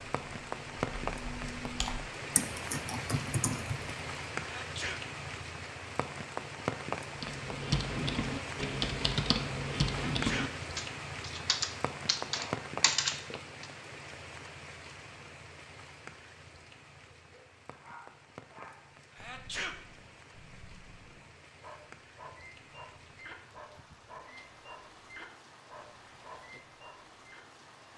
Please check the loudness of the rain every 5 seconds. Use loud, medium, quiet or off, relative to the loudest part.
loud, loud, loud, quiet, quiet, quiet.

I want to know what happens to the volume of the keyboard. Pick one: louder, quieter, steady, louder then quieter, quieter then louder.
louder.